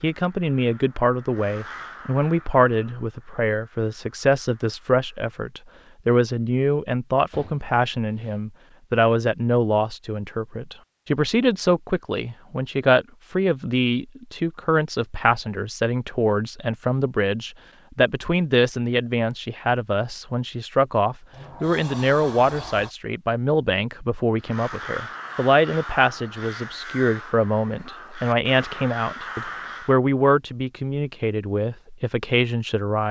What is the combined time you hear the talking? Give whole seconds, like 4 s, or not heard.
33 s.